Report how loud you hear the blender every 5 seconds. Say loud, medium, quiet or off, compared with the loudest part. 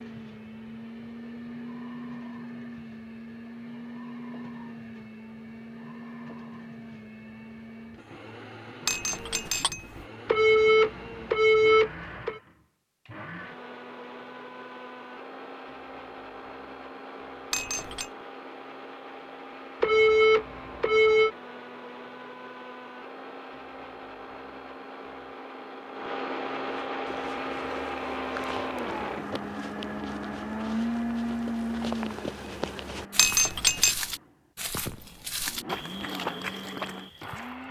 medium, medium, medium, medium, medium, loud, loud, medium.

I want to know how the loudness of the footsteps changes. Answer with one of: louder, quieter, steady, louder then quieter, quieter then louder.
louder.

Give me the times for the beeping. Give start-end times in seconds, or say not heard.
10.2-12.4, 19.8-21.3.